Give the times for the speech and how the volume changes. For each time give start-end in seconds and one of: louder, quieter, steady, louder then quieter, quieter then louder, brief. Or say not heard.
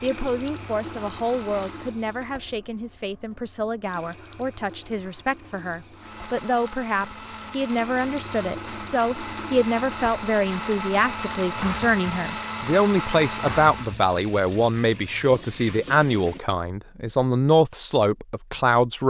0.0-19.0 louder.